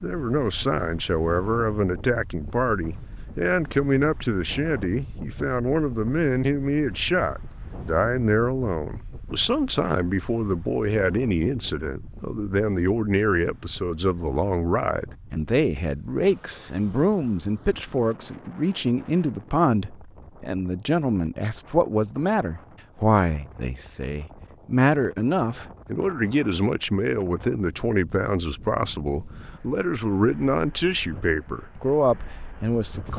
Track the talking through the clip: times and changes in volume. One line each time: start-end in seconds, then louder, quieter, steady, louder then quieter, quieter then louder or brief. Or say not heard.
0.0-33.1 steady.